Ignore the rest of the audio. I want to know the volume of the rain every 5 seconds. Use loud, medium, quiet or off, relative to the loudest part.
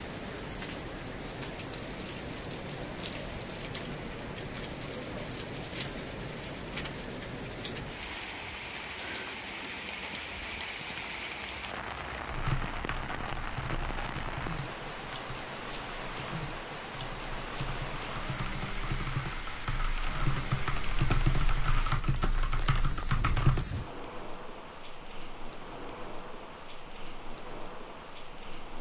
loud, loud, loud, loud, loud, medium.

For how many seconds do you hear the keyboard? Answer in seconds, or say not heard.
11 s.